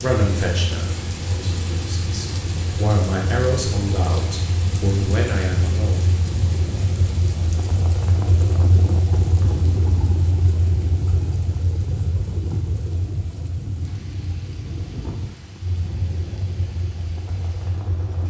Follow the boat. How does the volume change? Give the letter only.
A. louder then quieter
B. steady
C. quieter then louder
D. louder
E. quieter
A.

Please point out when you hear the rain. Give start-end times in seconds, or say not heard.
0.0-18.2.